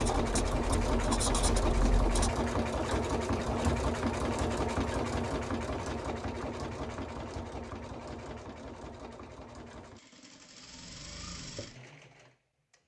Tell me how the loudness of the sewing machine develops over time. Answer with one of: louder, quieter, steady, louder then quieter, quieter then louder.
quieter.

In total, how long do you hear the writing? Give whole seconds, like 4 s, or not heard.
2 s.